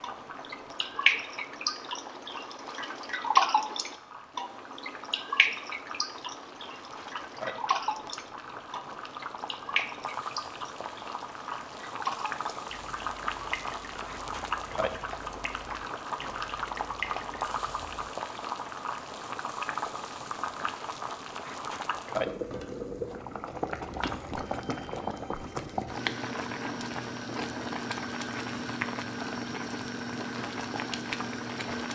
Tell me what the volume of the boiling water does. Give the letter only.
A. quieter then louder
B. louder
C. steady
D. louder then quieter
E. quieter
B.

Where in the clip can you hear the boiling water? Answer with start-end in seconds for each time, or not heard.
0.0-31.8.